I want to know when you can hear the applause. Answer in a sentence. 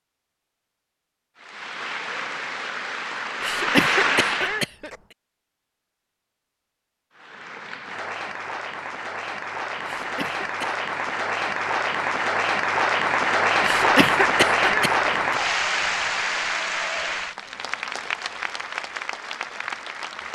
The applause can be heard from 1.4 to 4.7 s and from 7.2 to 20.3 s.